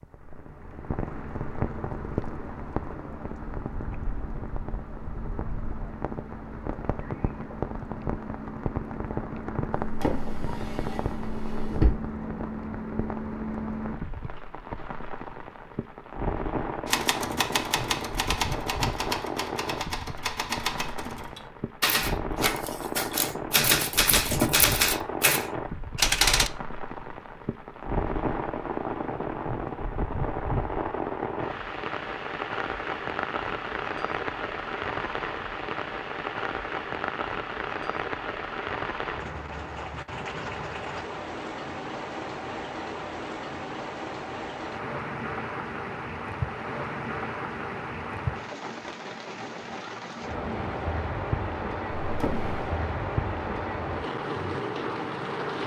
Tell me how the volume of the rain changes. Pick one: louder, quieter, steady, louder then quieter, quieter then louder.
steady.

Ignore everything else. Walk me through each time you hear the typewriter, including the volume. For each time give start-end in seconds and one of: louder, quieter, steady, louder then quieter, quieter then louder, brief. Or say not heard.
16.9-26.5 louder.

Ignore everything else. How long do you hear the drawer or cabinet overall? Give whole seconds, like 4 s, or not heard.
3 s.